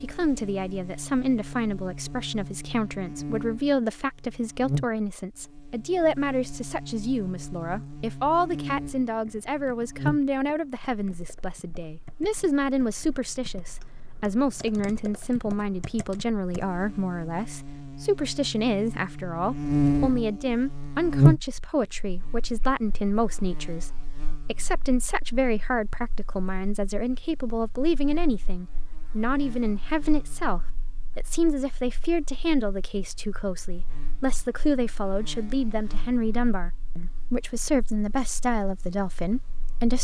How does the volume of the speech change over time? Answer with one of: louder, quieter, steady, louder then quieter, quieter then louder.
steady.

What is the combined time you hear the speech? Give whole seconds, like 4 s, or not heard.
40 s.